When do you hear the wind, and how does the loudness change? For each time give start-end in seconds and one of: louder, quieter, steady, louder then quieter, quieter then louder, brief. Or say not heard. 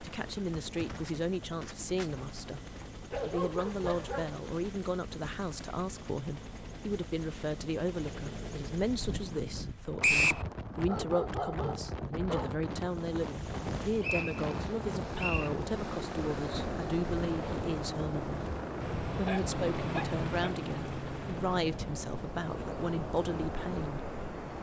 8.9-24.5 steady.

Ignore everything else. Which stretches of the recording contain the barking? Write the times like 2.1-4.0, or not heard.
3.1-4.4, 10.8-12.6, 18.8-20.6.